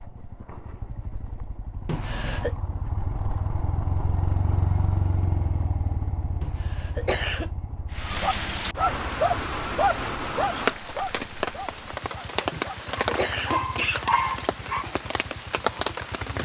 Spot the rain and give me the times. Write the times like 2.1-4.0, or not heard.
7.9-16.4.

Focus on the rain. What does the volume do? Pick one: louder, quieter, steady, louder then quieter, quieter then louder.
steady.